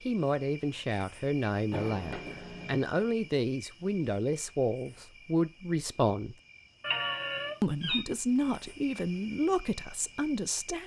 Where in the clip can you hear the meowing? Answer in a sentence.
The meowing can be heard from 1.7 to 2.9 s and from 6.8 to 8.1 s.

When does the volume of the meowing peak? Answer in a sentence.
The volume of the meowing peaks at 7 seconds.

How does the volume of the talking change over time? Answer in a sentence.
The loudness of the talking stays about the same.